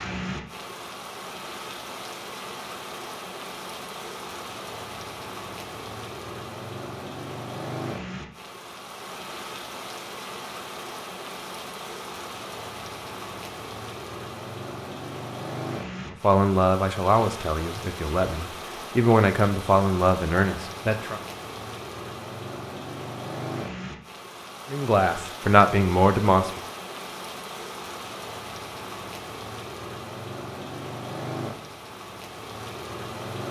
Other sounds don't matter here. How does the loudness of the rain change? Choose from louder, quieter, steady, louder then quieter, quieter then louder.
steady.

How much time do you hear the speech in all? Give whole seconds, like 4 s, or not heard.
7 s.